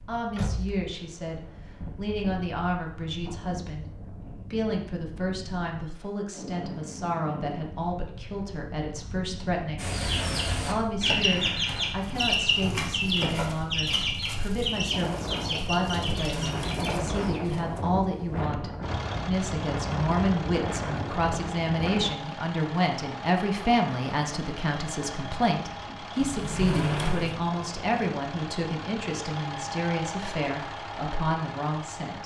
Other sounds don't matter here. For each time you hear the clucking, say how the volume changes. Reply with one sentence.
You can hear the clucking from 9.8 to 17.1 s, getting quieter.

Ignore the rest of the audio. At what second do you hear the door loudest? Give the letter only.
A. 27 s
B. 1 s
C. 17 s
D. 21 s
A.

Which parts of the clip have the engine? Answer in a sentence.
The engine can be heard from 18.8 to 32.2 s.